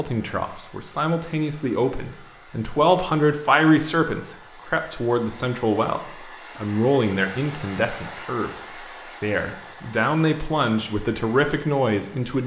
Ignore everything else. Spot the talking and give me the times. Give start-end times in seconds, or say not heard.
0.0-8.5, 9.2-12.4.